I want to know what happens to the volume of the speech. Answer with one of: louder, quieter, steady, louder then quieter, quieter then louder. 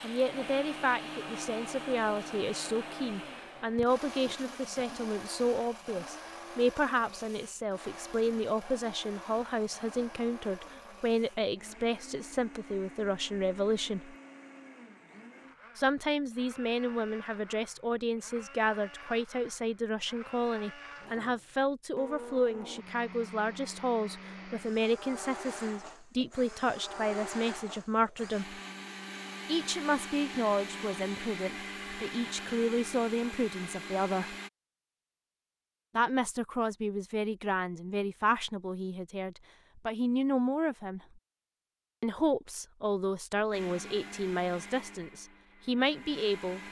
steady.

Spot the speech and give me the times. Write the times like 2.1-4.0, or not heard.
0.0-14.2, 15.8-28.6, 29.4-34.4, 36.0-41.0, 42.0-46.6.